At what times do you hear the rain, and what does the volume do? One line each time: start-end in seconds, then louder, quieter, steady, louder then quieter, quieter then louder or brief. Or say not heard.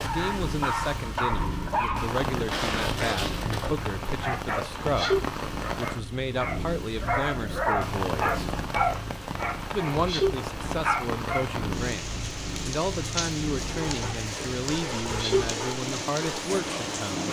0.0-17.2 steady.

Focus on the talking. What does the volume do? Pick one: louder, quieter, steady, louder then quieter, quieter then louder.
steady.